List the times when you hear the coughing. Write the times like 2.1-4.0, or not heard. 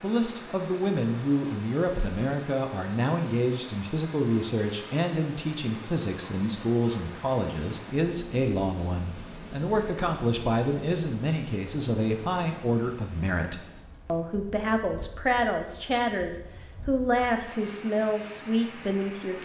not heard.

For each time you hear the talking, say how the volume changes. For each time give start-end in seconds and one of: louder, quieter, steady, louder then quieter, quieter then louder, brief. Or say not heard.
0.0-19.3 steady.